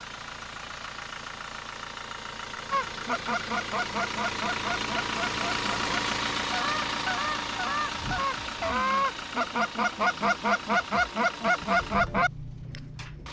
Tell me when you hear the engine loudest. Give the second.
6 s.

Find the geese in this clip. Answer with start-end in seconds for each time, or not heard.
2.7-12.3.